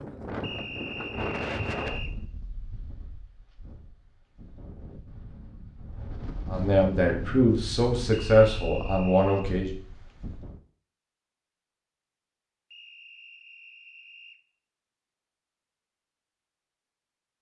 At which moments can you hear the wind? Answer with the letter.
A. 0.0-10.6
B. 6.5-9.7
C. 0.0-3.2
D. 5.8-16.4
A.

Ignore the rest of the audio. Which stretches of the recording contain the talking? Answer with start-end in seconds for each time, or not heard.
6.5-9.7.